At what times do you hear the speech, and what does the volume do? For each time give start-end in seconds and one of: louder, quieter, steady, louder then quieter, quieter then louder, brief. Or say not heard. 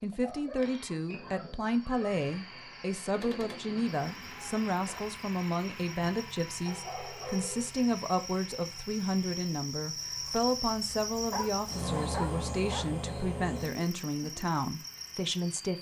0.0-15.7 steady.